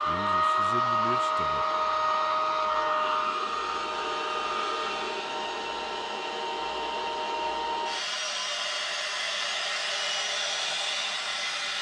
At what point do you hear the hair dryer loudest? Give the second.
1 s.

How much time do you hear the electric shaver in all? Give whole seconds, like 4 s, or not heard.
not heard.